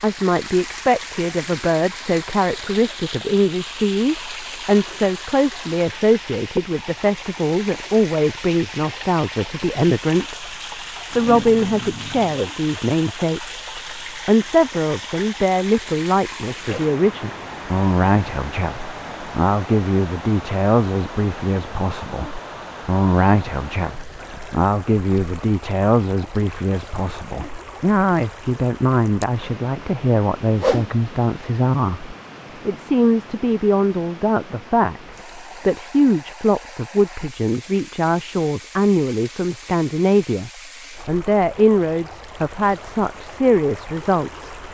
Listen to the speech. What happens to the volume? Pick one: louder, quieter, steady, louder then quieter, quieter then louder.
steady.